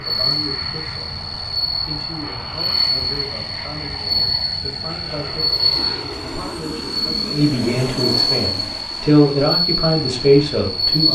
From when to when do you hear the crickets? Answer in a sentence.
The crickets can be heard from 0.0 to 11.1 s.